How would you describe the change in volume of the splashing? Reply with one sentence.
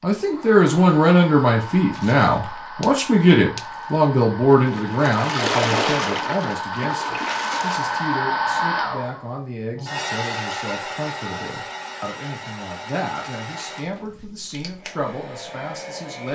The volume of the splashing goes up, then down.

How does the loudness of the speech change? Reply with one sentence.
The volume of the speech goes down.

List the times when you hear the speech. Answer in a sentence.
You can hear the speech from 0.0 to 16.3 s.